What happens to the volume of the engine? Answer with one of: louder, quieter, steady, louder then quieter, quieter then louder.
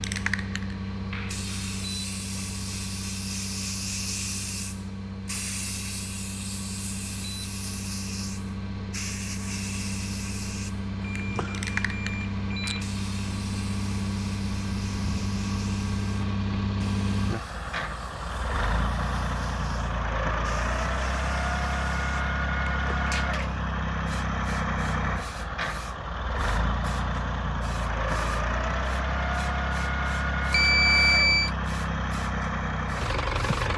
louder.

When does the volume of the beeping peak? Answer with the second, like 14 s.
31 s.